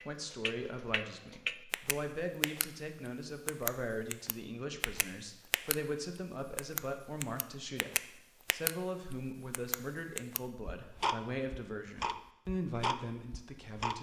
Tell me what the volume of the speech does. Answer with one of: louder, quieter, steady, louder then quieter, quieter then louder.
steady.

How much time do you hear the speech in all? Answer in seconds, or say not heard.
14 s.